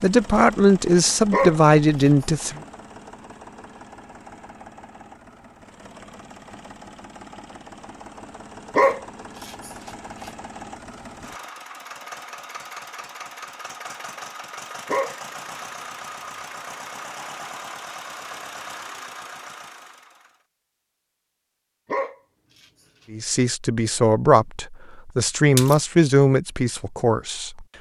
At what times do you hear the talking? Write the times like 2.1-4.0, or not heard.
0.0-2.6, 23.1-27.6.